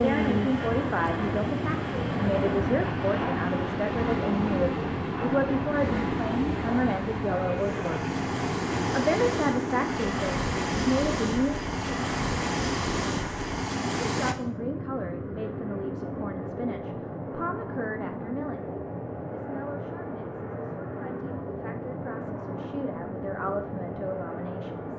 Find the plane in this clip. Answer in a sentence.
You can hear the plane from 0.0 to 24.9 s.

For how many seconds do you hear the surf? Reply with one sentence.
You can hear the surf for 14 seconds altogether.